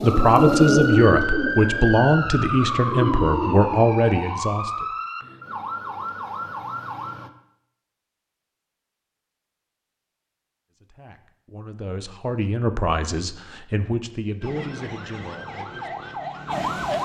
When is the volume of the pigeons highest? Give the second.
1 s.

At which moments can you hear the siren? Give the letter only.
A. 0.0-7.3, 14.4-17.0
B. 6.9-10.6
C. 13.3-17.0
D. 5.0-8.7
A.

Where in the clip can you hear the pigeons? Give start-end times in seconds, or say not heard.
0.0-3.6.